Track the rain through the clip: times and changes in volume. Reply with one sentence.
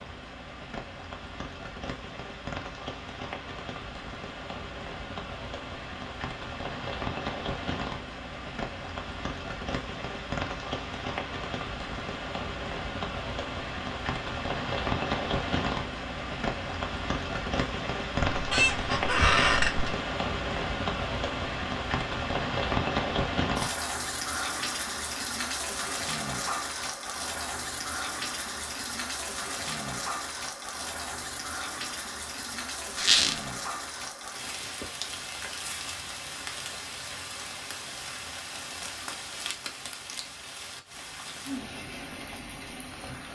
The rain can be heard from 0.0 to 43.2 s, getting louder then quieter.